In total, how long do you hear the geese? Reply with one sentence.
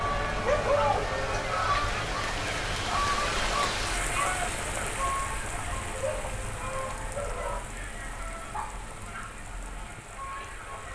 The geese can be heard for 11 seconds in total.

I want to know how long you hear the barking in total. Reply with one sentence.
You can hear the barking for 3 seconds altogether.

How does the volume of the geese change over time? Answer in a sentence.
The volume of the geese goes down.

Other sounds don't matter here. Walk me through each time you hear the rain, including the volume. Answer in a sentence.
The rain can be heard from 0.0 to 10.8 s, getting louder then quieter.